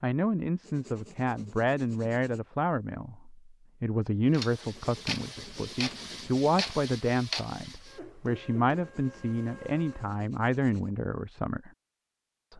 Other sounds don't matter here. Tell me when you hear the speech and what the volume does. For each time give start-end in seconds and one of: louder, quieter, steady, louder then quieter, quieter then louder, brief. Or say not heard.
0.0-11.7 steady.